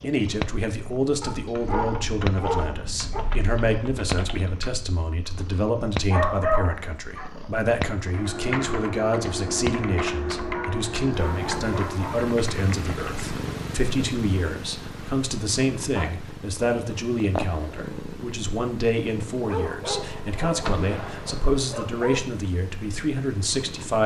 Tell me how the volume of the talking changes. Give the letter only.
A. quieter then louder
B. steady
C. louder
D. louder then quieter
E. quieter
B.